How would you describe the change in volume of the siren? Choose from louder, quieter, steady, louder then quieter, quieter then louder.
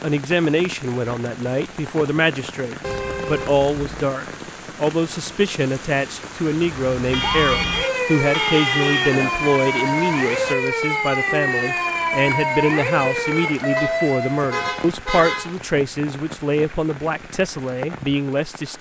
steady.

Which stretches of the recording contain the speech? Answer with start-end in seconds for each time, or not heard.
0.0-18.7.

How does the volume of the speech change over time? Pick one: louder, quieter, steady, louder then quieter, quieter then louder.
steady.